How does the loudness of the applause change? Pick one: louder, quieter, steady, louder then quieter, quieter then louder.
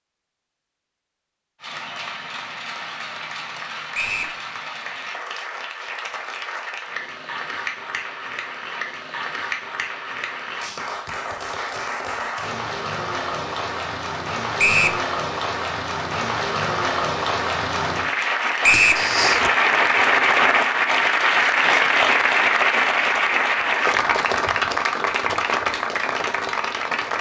louder.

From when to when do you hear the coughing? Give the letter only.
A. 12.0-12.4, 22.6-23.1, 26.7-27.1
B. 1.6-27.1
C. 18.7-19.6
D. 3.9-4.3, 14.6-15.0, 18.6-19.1
C.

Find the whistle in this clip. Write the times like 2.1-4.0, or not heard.
3.9-4.3, 14.6-15.0, 18.6-19.1.